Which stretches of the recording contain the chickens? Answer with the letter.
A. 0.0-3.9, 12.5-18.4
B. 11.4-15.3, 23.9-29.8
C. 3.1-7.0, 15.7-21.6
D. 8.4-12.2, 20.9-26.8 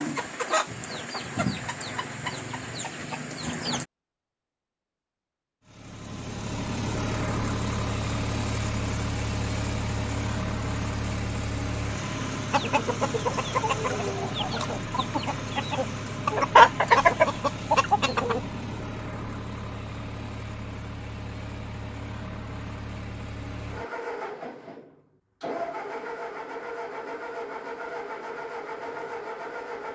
A.